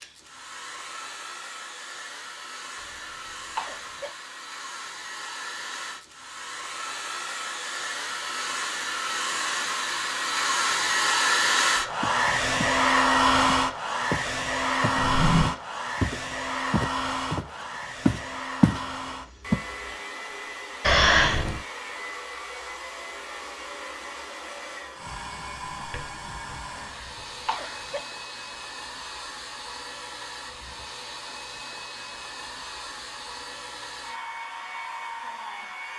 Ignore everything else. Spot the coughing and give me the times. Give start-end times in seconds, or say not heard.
2.8-4.1, 20.8-21.6, 26.7-28.0.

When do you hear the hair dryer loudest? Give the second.
13 s.